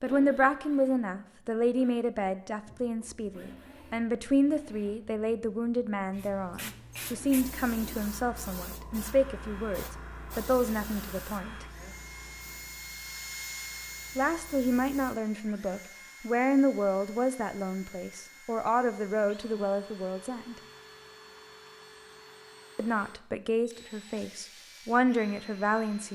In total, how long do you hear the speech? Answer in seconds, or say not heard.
21 s.